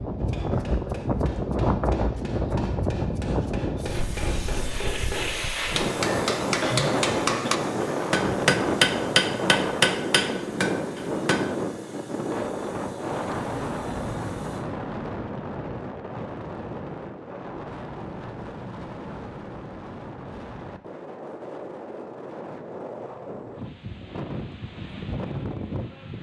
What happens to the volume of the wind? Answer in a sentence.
The volume of the wind goes down.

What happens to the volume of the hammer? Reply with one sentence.
The loudness of the hammer goes up.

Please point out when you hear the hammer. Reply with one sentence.
You can hear the hammer from 0.1 to 11.6 s.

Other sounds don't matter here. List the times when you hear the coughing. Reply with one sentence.
You can hear the coughing from 6.6 to 7.7 s.